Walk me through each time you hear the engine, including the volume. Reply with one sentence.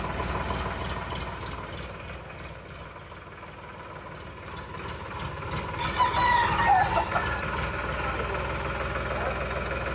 You can hear the engine from 0.0 to 9.9 s, getting quieter then louder.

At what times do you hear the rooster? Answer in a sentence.
The rooster can be heard from 5.8 to 7.5 s.